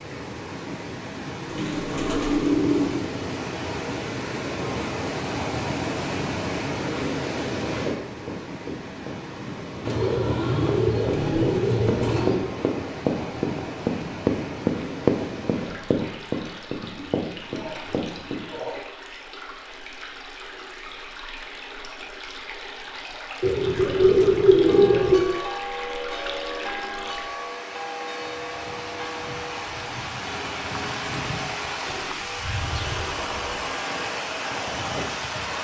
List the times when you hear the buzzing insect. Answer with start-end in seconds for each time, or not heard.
not heard.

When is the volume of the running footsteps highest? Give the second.
15 s.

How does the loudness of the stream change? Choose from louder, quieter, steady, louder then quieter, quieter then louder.
quieter then louder.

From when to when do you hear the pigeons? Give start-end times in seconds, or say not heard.
1.4-3.0, 9.8-12.4, 16.9-18.9, 23.4-25.2, 31.9-33.6.